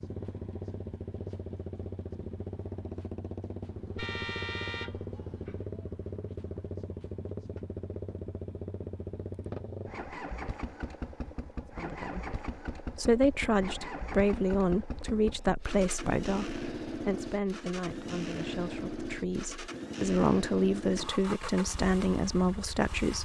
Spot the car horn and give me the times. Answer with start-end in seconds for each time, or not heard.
4.0-5.6.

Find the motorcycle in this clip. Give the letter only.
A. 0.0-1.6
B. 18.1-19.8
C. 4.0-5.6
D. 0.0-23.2
D.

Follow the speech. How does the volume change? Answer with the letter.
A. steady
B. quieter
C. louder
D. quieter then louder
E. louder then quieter
D.